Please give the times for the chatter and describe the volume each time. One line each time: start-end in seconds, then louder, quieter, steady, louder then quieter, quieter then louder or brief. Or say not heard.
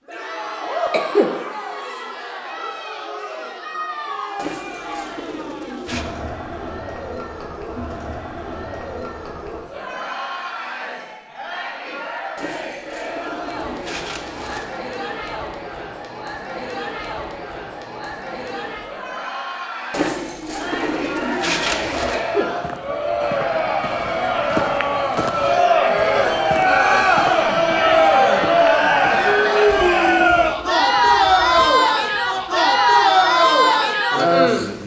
0.1-34.8 louder.